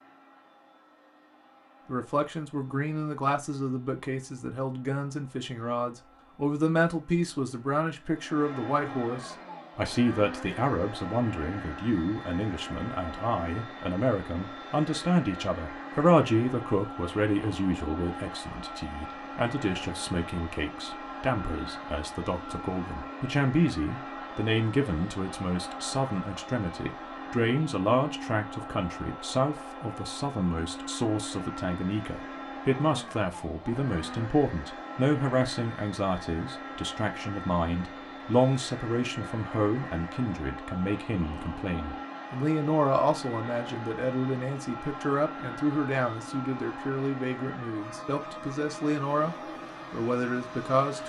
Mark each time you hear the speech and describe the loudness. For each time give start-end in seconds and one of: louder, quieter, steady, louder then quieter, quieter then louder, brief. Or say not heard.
1.9-51.0 steady.